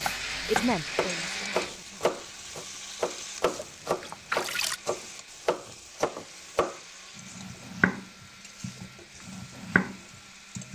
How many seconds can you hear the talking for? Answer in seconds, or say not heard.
2 s.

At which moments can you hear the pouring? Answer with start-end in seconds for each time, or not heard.
3.5-4.8.